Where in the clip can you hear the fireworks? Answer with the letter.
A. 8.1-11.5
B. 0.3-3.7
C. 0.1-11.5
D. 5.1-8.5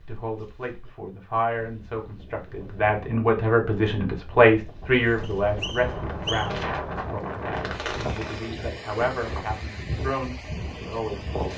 D.